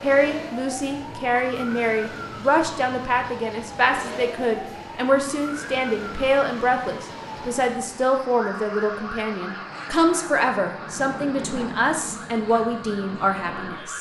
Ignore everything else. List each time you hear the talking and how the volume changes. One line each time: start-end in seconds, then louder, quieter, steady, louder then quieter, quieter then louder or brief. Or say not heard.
0.0-13.9 steady.